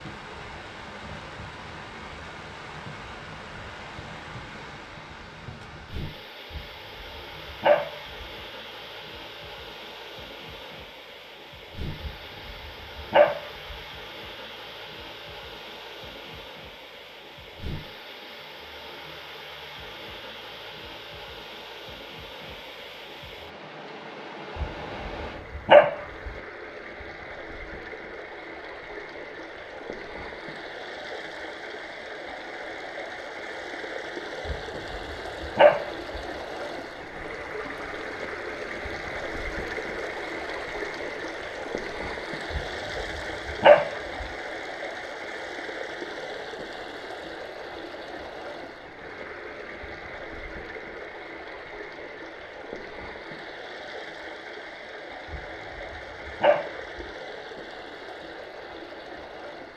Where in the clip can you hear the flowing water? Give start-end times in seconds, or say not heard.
0.0-59.7.